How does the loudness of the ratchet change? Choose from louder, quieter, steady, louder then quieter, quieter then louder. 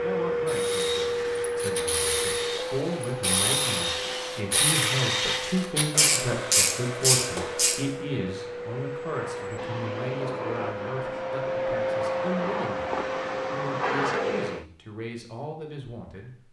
louder.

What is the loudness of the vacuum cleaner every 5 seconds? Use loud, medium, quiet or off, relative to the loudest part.
loud, medium, loud, off.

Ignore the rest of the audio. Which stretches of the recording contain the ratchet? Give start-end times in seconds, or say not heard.
0.5-7.8.